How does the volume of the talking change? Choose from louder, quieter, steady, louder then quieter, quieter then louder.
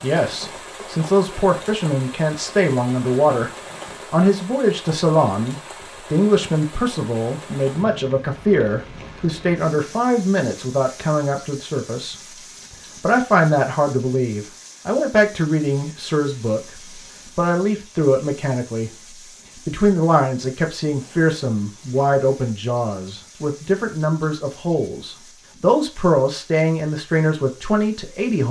steady.